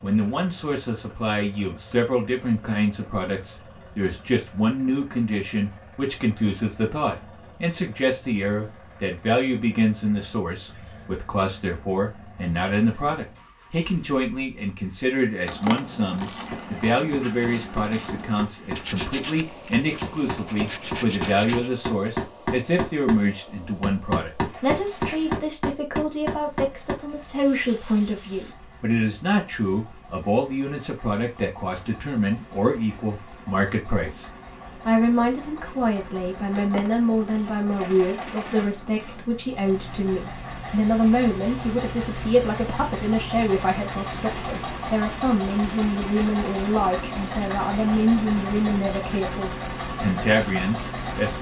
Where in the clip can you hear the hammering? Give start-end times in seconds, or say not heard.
16.1-26.9.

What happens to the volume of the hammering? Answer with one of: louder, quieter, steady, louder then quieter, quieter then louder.
louder.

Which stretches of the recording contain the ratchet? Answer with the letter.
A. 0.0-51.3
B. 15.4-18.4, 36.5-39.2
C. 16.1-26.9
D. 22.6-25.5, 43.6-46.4
B.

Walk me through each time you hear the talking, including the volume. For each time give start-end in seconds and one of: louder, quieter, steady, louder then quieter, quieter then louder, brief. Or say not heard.
0.0-51.3 steady.